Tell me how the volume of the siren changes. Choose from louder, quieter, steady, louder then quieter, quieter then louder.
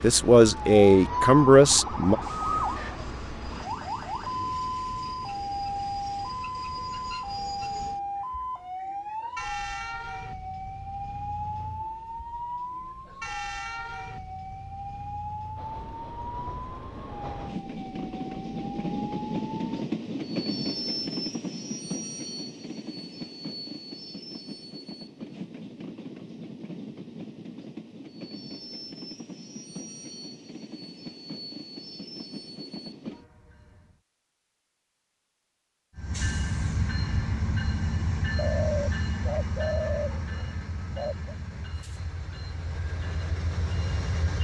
quieter.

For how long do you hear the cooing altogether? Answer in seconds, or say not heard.
3 s.